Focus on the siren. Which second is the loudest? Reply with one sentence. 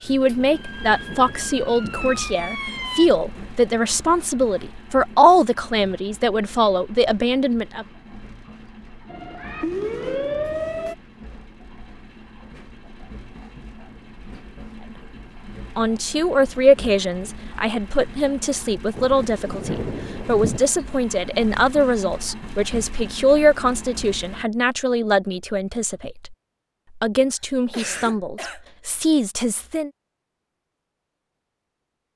The loudest moment of the siren is at 10 seconds.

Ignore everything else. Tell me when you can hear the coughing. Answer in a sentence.
The coughing can be heard from 27.3 to 28.6 s.